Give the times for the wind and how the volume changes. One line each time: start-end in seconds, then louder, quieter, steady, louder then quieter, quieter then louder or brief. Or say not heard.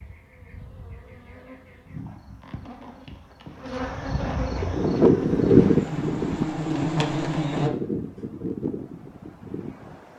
4.4-10.1 quieter.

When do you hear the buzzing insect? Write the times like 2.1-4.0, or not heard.
0.0-7.7.